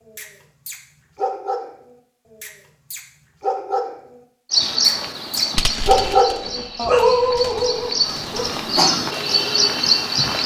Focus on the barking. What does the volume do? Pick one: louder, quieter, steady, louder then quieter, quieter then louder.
louder then quieter.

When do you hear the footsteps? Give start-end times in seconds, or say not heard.
not heard.